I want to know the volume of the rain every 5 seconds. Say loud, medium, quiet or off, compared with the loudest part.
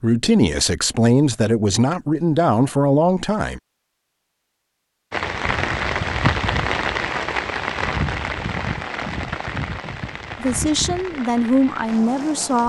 off, loud, medium.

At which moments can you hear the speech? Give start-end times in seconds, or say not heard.
0.0-3.6, 10.4-12.6.